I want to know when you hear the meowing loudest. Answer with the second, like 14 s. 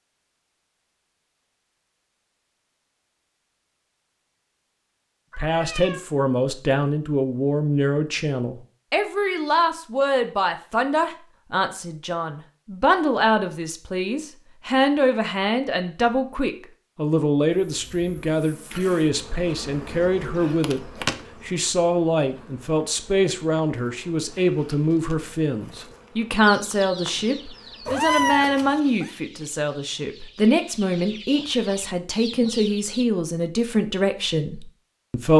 28 s.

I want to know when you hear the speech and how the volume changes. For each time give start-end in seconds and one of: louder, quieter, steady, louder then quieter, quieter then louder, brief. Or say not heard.
5.3-35.3 steady.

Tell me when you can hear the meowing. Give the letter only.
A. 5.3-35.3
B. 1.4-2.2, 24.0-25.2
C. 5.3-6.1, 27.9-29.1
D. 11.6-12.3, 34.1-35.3
C.